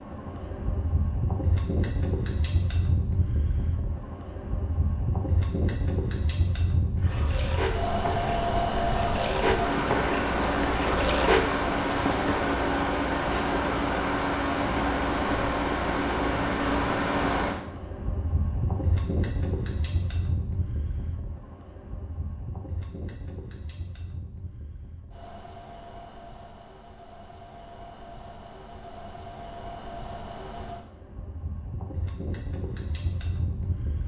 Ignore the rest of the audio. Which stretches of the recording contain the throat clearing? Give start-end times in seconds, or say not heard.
not heard.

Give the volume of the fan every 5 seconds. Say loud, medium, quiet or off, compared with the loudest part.
medium, loud, loud, loud, quiet, quiet, quiet.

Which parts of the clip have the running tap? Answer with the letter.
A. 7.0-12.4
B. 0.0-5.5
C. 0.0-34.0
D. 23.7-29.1
A.